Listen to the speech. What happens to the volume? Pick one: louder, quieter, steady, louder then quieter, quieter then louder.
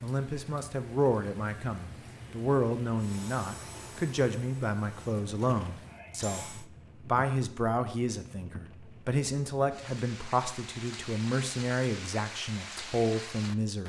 steady.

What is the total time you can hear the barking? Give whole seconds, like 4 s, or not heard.
not heard.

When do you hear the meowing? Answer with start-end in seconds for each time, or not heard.
not heard.